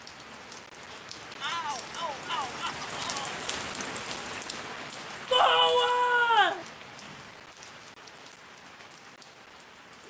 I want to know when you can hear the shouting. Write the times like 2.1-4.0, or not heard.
1.4-3.4, 5.3-6.7.